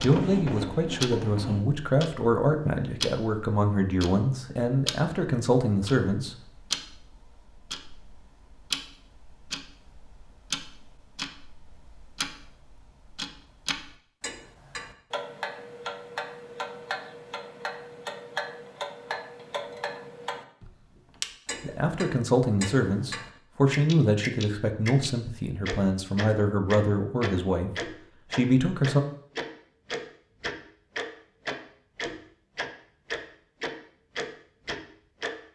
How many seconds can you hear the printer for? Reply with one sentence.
You can hear the printer for 2 seconds altogether.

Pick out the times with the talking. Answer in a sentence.
The talking can be heard from 0.0 to 6.3 s and from 21.6 to 29.0 s.